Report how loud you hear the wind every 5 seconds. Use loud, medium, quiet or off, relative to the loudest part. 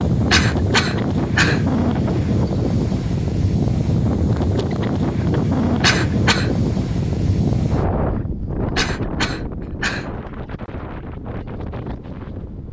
loud, loud, quiet.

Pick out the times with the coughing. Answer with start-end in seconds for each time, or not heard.
0.3-1.6, 5.8-6.5, 8.8-10.1.